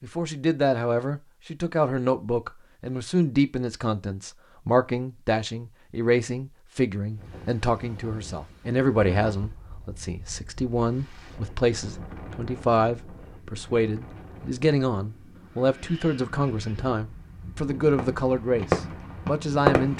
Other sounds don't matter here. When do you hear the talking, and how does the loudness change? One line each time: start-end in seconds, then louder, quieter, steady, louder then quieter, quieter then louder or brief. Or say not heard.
0.0-19.9 steady.